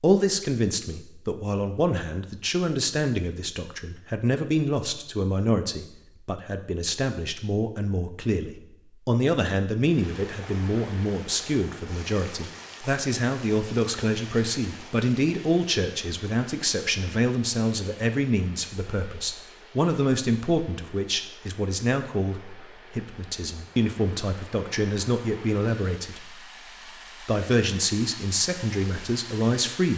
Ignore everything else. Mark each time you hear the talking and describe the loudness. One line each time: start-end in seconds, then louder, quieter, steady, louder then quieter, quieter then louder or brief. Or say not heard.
0.0-26.4 steady
27.2-29.9 brief.